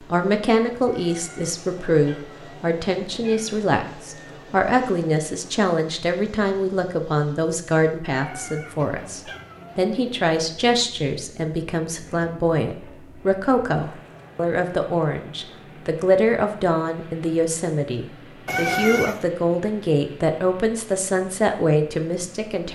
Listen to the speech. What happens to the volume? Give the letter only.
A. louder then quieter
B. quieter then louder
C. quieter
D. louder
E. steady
E.